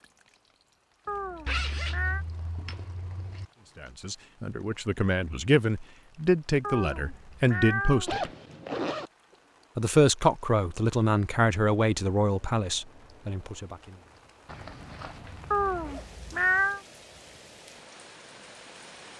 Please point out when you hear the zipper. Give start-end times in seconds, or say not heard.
1.4-3.5, 8.1-9.1, 14.4-16.1.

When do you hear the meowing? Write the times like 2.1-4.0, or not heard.
1.1-2.2, 6.6-8.1, 15.5-16.8.